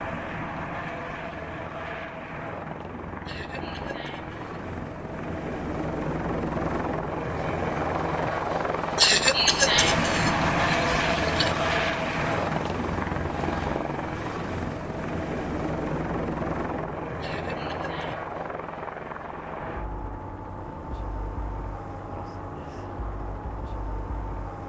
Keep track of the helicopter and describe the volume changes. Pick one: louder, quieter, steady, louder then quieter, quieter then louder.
louder then quieter.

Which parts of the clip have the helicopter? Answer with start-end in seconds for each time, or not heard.
0.0-24.6.